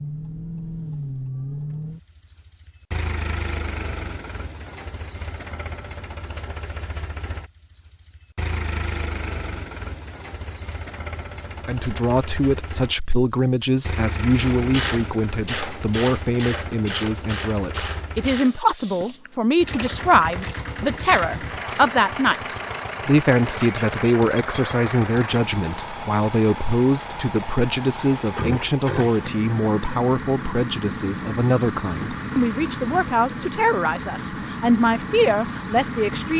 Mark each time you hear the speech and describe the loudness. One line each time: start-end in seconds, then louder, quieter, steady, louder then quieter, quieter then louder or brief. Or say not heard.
11.7-36.3 steady.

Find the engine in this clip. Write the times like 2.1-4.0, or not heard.
0.0-36.3.